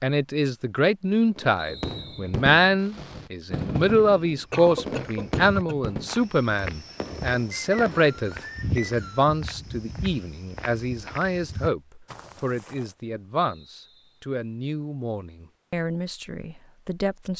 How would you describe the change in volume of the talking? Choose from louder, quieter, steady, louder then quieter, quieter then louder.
quieter.